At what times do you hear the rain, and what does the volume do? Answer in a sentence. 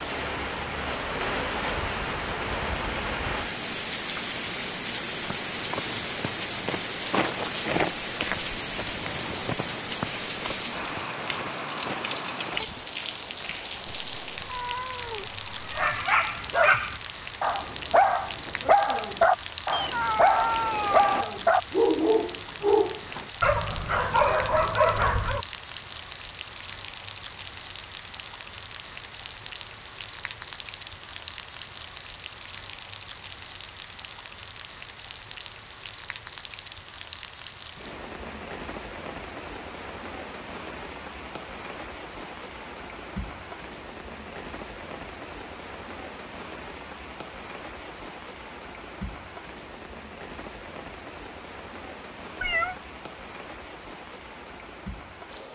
The rain can be heard from 0.0 to 55.4 s, getting quieter.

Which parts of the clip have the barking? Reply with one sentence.
The barking can be heard from 15.8 to 25.4 s.